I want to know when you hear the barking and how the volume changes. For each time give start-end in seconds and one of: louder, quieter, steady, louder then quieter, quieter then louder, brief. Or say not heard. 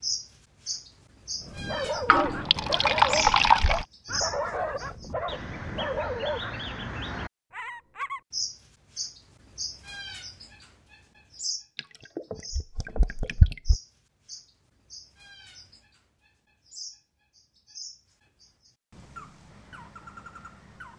1.4-6.7 steady.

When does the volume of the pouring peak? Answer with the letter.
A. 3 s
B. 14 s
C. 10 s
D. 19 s
A.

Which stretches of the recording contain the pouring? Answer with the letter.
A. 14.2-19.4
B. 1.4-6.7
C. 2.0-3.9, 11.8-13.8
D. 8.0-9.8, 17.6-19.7
C.